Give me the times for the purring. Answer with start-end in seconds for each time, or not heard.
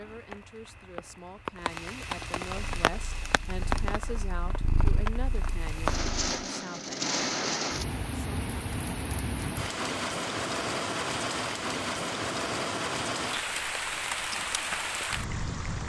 2.5-6.2.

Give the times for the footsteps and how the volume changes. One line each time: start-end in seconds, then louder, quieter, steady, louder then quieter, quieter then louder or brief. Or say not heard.
not heard.